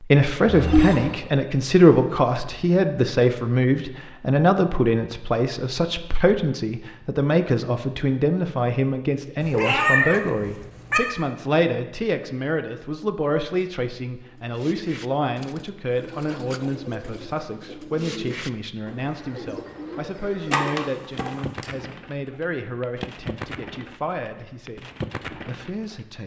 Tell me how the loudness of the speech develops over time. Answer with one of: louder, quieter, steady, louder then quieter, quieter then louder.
quieter.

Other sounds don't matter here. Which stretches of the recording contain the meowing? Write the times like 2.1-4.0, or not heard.
0.5-1.1, 9.4-11.0, 20.5-21.6.